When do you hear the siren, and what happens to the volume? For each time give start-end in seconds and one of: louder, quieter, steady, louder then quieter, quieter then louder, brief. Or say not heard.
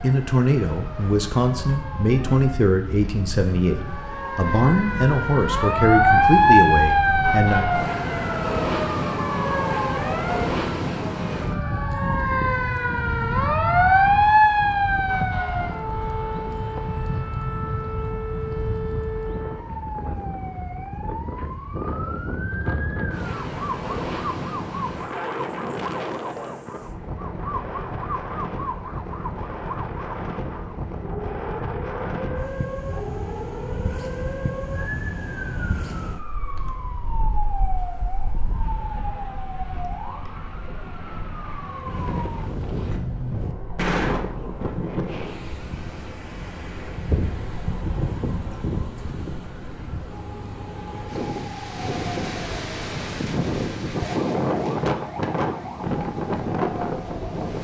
0.0-57.5 quieter.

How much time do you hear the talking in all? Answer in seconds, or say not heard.
8 s.